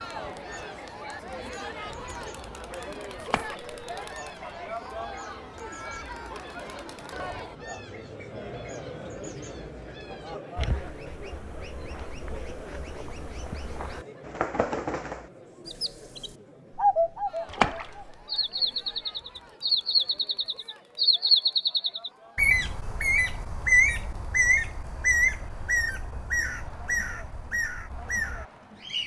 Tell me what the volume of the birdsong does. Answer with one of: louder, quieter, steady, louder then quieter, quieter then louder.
louder.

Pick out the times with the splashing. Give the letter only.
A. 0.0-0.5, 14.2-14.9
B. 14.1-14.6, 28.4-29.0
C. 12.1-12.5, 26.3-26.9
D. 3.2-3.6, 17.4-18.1
D.